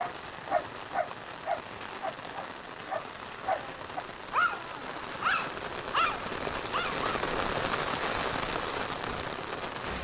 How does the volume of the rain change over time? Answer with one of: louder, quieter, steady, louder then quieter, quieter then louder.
louder.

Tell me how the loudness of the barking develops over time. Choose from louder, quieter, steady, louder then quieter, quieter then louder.
quieter then louder.